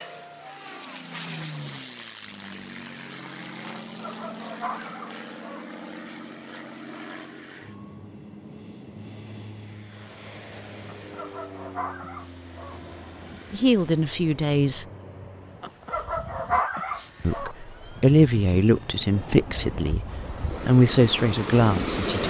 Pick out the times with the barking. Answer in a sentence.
You can hear the barking from 4.0 to 5.7 s, from 10.8 to 12.8 s and from 15.6 to 17.6 s.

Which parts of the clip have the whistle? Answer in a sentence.
The whistle can't be heard in this clip.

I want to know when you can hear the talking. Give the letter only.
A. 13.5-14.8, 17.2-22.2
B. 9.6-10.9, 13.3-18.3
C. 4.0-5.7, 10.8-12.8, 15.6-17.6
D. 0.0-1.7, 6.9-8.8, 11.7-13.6
A.